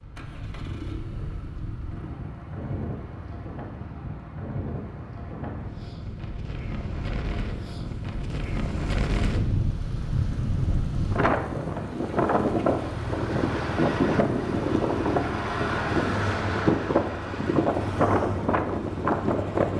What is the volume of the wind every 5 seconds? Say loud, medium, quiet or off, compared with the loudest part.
quiet, medium, loud, loud.